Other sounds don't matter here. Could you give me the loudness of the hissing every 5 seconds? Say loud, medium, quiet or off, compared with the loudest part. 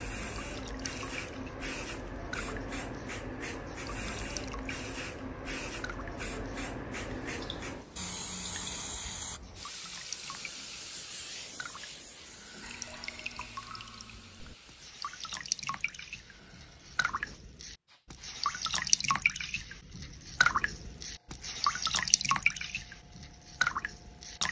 loud, loud, medium, quiet, quiet.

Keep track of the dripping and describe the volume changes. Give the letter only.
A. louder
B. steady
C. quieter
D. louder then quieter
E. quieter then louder
A.